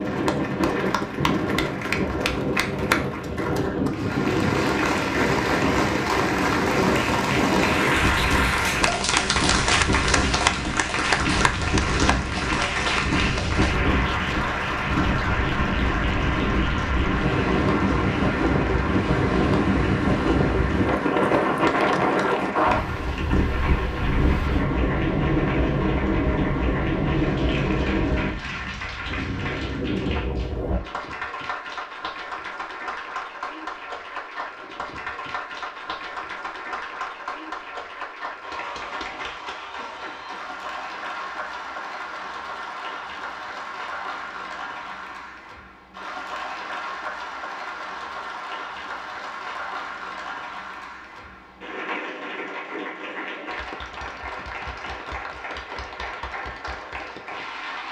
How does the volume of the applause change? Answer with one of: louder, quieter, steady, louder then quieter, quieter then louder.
quieter.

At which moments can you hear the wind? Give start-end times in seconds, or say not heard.
0.0-30.8.